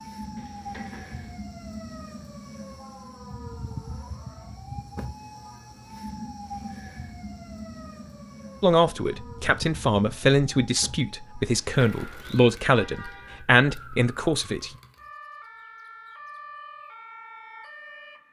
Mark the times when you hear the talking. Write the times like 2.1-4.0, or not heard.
8.6-14.7.